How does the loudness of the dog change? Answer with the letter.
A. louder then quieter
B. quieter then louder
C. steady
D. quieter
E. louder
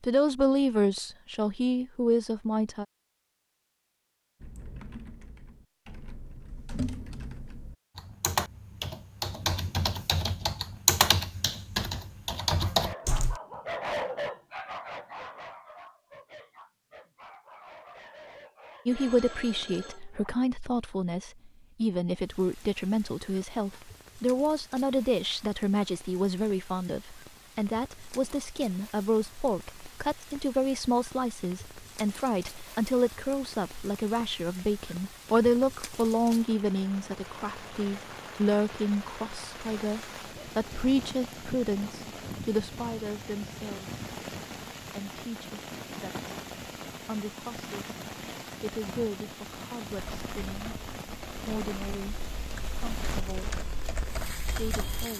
D.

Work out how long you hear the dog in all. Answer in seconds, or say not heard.
8 s.